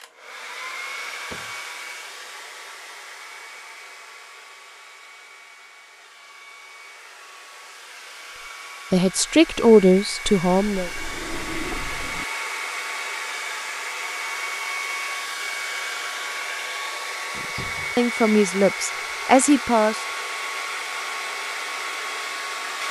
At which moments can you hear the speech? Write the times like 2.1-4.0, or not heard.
8.9-10.9, 17.9-20.0.